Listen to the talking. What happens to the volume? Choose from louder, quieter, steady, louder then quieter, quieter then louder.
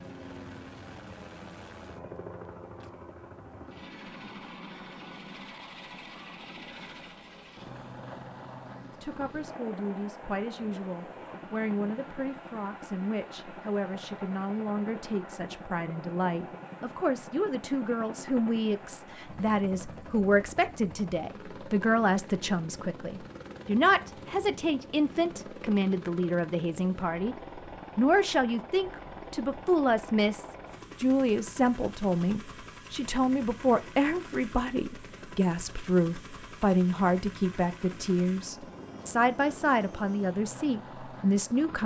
louder.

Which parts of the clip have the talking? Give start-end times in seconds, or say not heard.
8.8-27.4, 27.9-41.8.